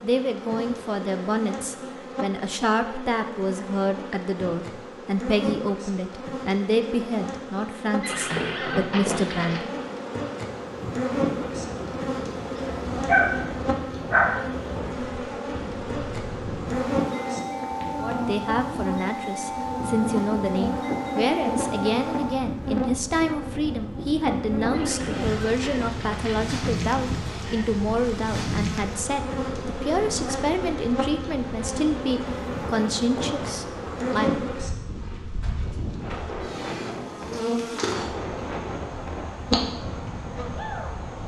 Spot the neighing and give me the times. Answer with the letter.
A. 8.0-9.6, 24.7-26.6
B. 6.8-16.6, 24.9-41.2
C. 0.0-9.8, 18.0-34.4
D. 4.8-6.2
A.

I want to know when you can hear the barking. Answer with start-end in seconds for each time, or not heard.
13.1-14.4.